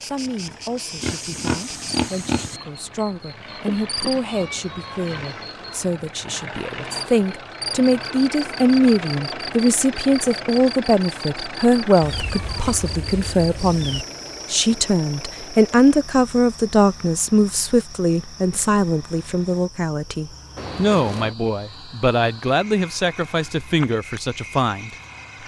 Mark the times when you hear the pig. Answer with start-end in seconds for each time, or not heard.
1.0-2.6.